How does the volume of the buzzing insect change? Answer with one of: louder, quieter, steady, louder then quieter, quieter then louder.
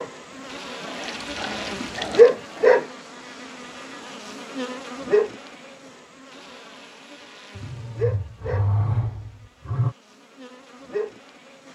quieter.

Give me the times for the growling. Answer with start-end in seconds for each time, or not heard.
0.3-2.7, 7.5-9.9.